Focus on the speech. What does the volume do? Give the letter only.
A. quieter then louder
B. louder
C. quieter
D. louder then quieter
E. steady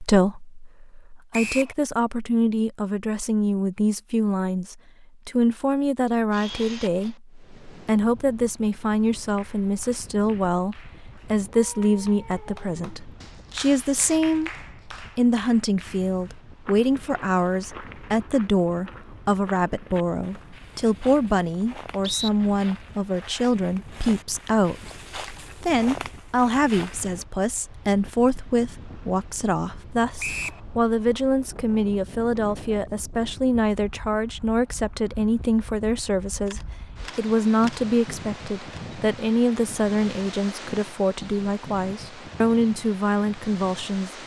E.